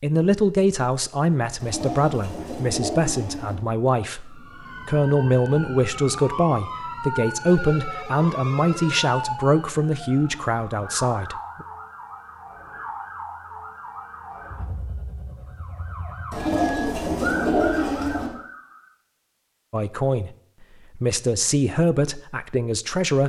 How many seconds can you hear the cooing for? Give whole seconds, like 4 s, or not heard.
4 s.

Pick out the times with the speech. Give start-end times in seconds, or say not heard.
0.0-11.7, 19.7-20.3, 20.9-23.2.